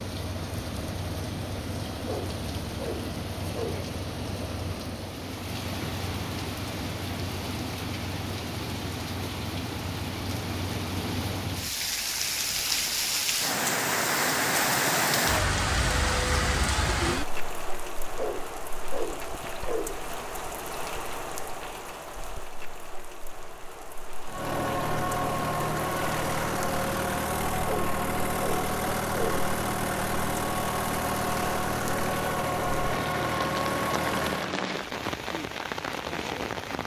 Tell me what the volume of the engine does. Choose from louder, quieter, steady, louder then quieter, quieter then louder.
steady.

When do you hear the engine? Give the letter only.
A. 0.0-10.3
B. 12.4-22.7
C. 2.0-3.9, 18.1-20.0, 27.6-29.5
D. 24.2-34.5
D.